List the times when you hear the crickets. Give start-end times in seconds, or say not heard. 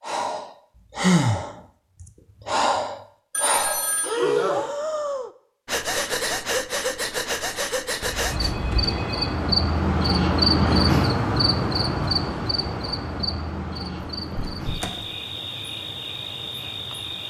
8.2-17.2.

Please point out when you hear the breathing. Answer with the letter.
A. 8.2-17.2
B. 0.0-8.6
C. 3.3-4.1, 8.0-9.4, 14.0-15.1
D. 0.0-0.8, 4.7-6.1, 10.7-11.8
B.